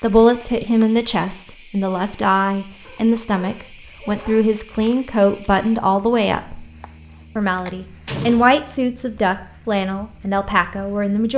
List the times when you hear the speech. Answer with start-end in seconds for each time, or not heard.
0.0-6.7, 7.3-11.3.